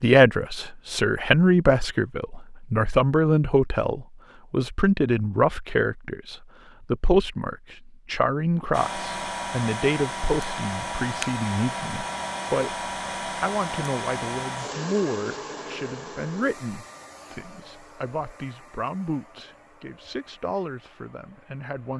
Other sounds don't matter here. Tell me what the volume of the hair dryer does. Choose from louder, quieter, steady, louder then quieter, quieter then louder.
quieter.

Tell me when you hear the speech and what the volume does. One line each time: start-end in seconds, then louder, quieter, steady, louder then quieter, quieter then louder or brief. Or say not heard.
0.0-21.9 quieter.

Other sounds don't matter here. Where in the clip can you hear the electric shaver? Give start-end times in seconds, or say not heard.
not heard.